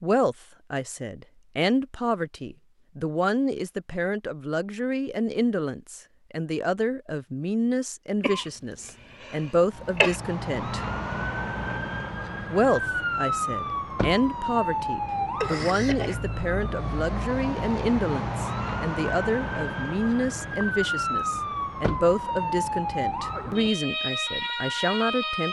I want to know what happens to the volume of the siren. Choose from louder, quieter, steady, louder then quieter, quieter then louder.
steady.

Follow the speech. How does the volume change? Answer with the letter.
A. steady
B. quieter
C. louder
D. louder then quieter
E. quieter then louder
A.